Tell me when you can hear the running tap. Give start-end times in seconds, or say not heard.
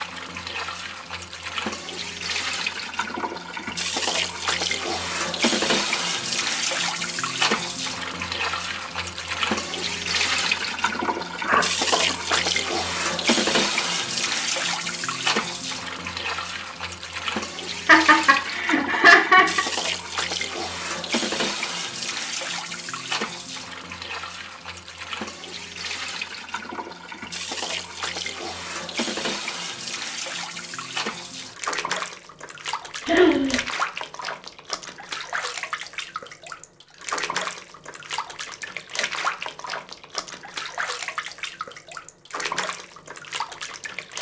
0.0-44.1.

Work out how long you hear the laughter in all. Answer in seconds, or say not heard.
3 s.